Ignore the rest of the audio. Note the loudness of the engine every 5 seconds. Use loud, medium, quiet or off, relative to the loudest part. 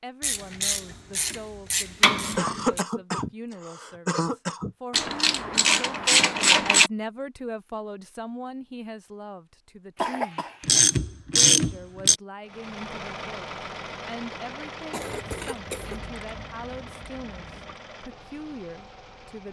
off, off, loud, medium.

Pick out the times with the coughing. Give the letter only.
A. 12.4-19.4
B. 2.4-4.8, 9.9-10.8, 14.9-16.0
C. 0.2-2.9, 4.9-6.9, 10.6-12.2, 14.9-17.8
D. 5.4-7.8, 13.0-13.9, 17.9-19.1
B.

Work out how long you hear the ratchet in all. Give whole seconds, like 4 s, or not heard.
9 s.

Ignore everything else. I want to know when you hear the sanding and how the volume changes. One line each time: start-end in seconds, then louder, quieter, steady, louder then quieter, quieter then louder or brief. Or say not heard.
not heard.